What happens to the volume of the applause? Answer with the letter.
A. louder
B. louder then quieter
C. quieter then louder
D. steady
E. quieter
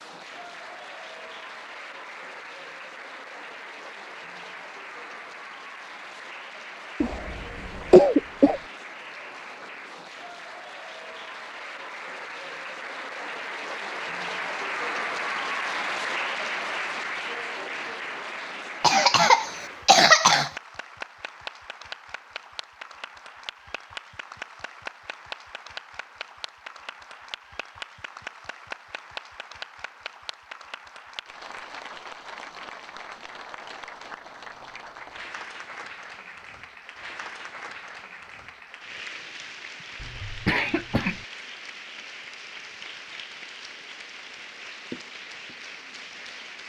B.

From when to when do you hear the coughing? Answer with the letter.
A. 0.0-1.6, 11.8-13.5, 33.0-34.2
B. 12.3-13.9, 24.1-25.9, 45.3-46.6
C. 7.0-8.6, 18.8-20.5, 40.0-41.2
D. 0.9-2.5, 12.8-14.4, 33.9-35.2
C.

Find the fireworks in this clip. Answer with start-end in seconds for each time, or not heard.
not heard.